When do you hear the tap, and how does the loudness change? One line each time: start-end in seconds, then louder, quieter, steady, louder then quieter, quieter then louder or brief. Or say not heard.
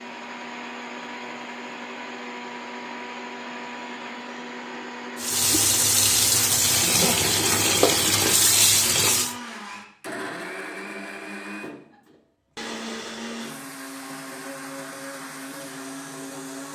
5.2-9.3 steady.